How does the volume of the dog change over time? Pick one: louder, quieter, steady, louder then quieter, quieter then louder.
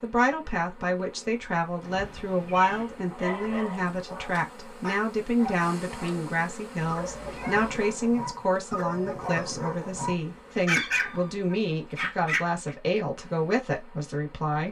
louder.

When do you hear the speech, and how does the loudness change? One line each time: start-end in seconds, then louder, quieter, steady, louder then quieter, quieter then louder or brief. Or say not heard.
0.0-14.6 steady.